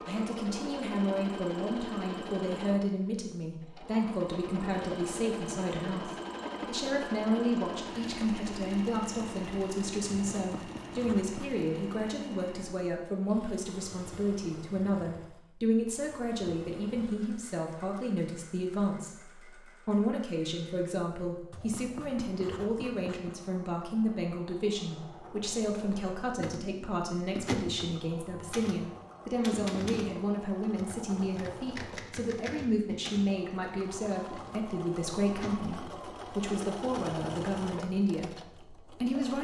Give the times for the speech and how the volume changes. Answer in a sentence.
The speech can be heard from 0.1 to 39.3 s, at a steady volume.